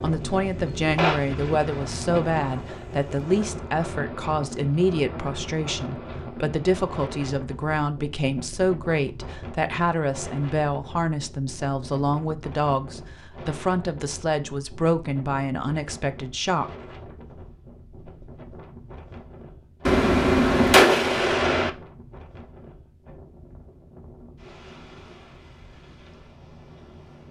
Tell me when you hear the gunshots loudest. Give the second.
21 s.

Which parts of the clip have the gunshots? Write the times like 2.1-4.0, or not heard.
0.6-2.5, 19.9-21.7.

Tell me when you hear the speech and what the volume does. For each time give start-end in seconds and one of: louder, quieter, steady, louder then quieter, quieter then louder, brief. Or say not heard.
0.0-16.7 steady.